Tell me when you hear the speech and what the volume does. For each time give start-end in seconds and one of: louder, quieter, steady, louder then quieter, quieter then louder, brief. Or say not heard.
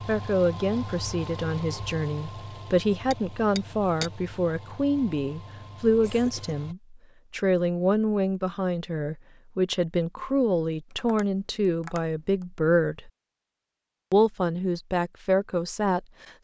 0.1-13.1 steady
14.1-16.1 brief.